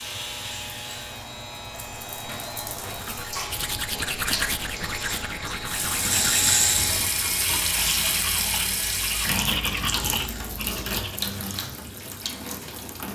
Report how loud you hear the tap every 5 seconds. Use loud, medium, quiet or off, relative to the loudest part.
medium, loud, medium.